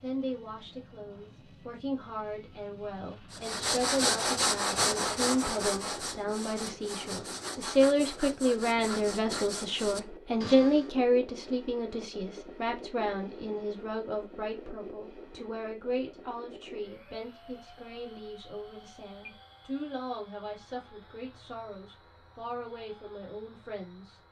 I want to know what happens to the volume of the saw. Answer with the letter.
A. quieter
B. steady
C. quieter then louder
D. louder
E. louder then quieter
A.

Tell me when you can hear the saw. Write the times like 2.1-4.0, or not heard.
3.3-10.9.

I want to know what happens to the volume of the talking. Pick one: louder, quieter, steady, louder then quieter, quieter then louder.
louder then quieter.